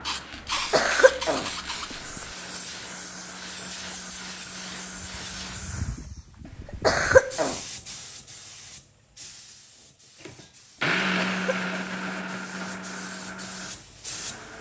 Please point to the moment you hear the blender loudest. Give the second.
11 s.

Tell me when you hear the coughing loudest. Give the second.
7 s.